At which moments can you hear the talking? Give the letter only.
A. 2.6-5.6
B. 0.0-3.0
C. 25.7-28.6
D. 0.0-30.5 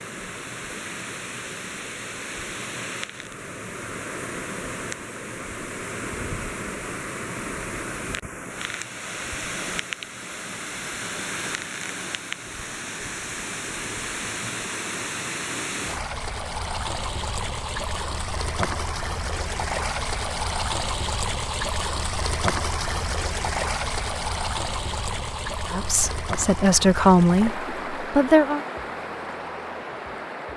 C.